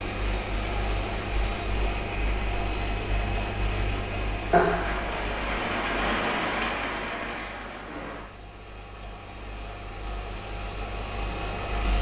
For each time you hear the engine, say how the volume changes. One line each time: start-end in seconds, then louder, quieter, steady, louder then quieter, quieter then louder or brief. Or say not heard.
0.0-11.9 quieter then louder.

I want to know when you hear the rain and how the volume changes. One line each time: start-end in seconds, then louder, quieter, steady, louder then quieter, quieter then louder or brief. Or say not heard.
0.0-8.2 louder.